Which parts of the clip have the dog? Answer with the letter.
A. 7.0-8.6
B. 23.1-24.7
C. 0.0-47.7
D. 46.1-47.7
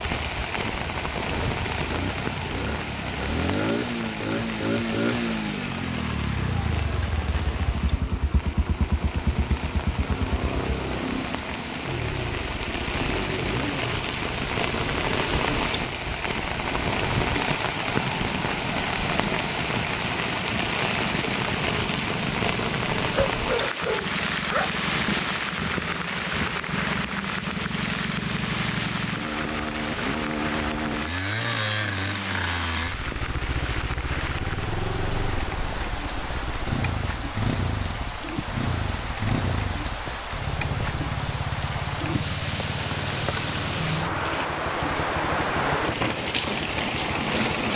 B.